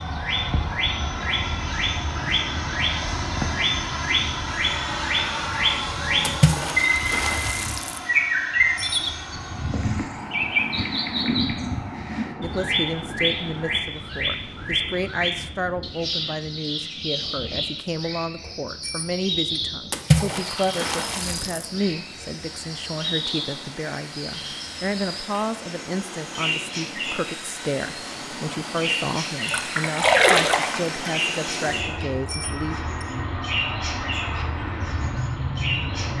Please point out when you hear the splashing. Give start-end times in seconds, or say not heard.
6.2-8.0, 19.9-21.6, 29.4-31.1.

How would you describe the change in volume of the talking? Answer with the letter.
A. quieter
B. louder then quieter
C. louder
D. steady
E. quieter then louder
D.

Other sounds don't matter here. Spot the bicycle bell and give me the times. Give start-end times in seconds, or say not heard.
8.8-9.2, 18.8-19.6, 32.2-33.0.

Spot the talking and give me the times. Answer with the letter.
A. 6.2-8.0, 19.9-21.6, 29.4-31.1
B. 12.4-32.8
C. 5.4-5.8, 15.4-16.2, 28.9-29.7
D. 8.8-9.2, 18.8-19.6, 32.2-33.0
B.